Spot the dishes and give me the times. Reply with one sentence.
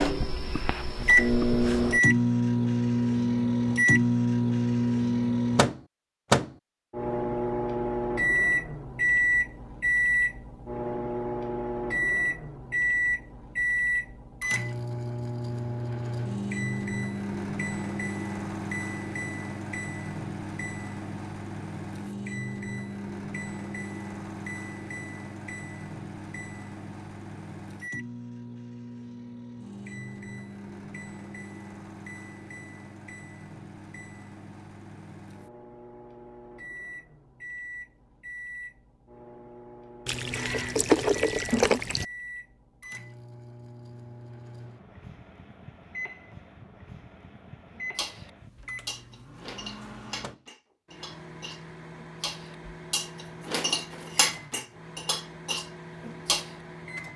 You can hear the dishes from 48.0 to 56.5 s.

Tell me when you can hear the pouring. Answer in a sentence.
The pouring can be heard from 40.0 to 42.0 s.